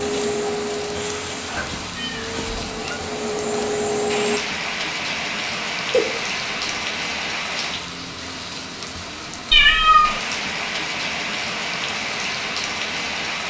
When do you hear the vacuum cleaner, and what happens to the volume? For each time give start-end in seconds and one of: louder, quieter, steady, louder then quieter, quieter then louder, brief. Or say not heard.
0.0-4.4 quieter then louder.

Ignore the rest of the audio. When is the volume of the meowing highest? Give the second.
10 s.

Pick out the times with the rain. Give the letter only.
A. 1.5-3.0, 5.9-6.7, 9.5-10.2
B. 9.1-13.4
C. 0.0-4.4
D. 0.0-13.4
D.